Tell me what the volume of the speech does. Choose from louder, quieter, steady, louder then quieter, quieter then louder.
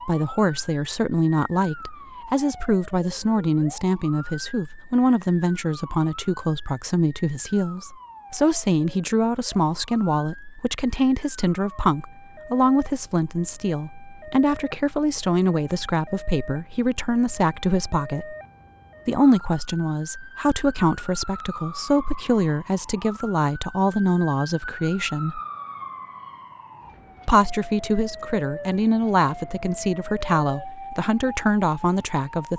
steady.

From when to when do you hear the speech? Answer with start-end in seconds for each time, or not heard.
0.1-18.4, 19.1-25.4, 27.2-32.5.